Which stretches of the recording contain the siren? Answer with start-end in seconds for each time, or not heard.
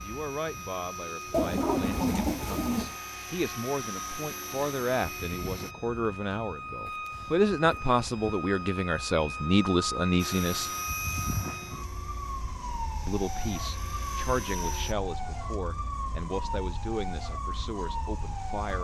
0.0-18.7.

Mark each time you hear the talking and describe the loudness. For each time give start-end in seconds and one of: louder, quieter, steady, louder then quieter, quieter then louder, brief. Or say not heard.
0.0-10.7 louder
13.1-18.7 quieter.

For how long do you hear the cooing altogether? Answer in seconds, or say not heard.
2 s.